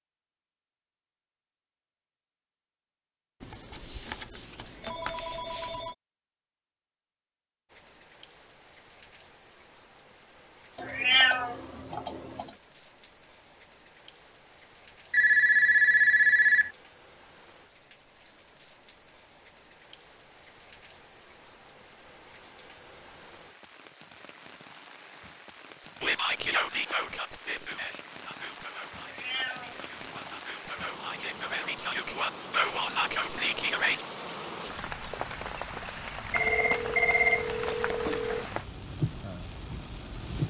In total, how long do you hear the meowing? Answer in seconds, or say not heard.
3 s.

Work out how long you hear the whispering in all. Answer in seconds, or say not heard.
8 s.